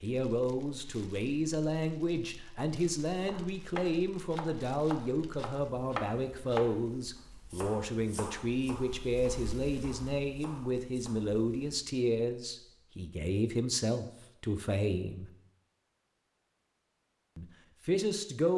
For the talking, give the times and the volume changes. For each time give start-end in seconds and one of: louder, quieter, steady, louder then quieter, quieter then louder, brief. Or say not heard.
0.0-15.3 steady
17.4-18.5 brief.